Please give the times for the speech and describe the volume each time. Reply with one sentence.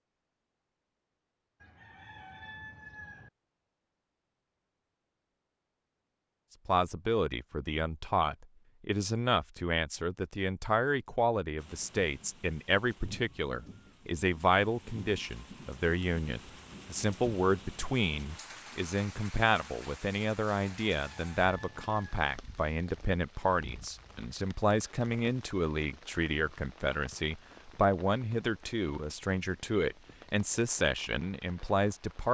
The speech can be heard from 6.7 to 32.2 s, at a steady volume.